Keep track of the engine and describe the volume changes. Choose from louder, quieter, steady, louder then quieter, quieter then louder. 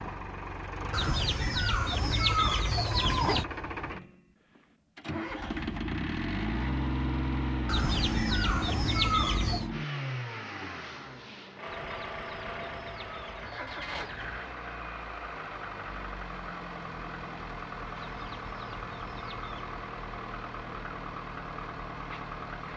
louder then quieter.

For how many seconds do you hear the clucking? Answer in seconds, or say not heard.
9 s.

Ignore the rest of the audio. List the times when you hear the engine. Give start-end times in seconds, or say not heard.
0.0-22.7.